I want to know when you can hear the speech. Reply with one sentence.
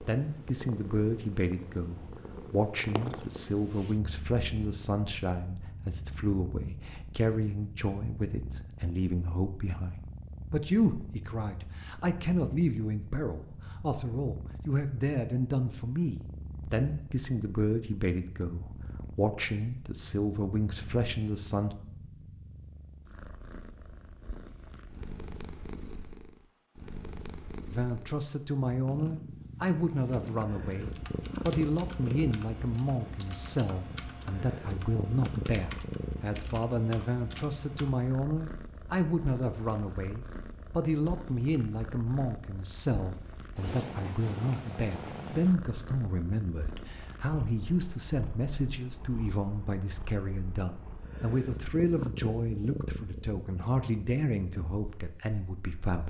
The speech can be heard from 0.0 to 21.8 s and from 27.7 to 56.0 s.